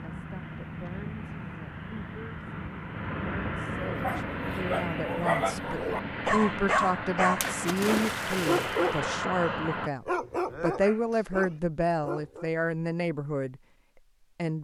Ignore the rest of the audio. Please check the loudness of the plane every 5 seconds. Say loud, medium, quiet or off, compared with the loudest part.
loud, loud, off.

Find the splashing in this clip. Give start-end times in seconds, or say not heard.
7.4-9.0.